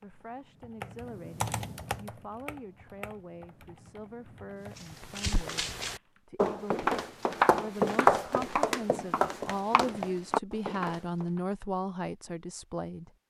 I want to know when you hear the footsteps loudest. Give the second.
8 s.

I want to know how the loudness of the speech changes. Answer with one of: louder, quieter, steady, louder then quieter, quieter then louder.
louder.